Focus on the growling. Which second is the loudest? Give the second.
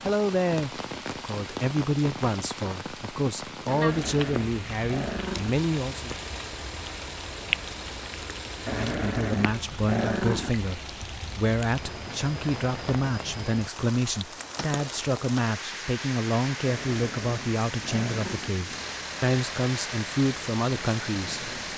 10 s.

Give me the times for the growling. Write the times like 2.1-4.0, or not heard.
3.7-5.5, 8.7-10.5, 16.6-18.5.